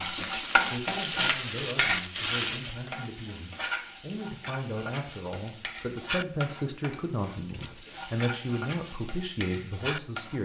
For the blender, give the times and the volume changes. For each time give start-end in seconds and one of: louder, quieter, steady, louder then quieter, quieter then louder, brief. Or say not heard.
not heard.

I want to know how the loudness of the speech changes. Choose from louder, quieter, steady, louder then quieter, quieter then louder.
louder.